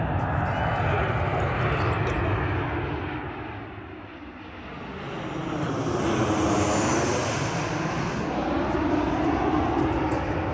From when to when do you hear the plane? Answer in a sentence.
You can hear the plane from 0.0 to 10.5 s.